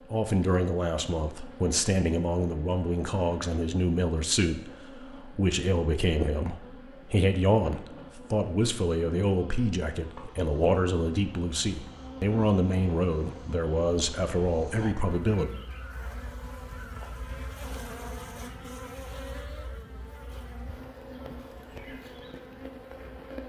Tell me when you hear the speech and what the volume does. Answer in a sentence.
You can hear the speech from 0.1 to 15.5 s, at a steady volume.